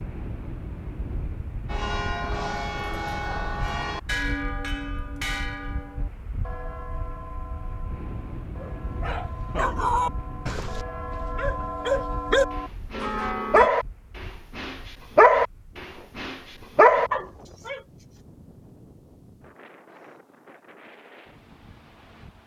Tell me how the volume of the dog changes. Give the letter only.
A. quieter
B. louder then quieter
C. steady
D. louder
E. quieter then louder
D.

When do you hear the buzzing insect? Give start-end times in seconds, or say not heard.
not heard.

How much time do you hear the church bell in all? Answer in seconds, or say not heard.
12 s.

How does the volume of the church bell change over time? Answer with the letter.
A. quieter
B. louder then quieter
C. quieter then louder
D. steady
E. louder
C.